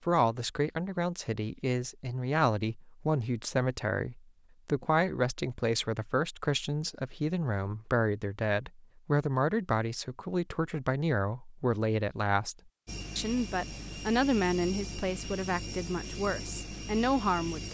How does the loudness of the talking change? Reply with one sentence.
The volume of the talking stays about the same.